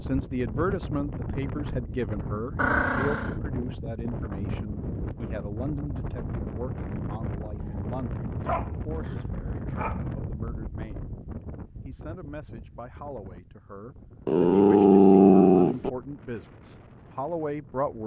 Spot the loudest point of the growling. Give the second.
15 s.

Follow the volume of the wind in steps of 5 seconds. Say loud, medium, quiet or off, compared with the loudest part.
loud, loud, medium, quiet.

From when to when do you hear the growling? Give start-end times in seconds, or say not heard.
2.5-3.4, 7.5-10.2, 14.2-15.9.